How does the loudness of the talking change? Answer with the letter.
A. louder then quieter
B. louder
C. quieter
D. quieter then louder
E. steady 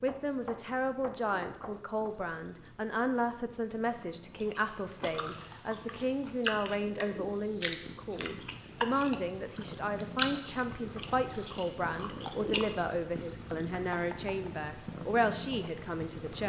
E.